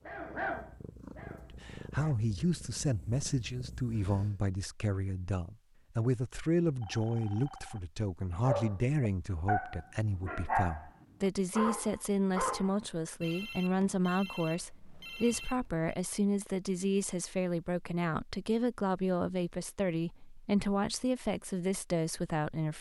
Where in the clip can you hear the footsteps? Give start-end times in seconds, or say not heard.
not heard.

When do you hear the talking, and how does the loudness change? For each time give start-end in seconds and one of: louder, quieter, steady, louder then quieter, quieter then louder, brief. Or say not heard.
1.5-22.7 steady.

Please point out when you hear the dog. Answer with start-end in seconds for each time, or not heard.
0.0-2.1, 8.4-12.8.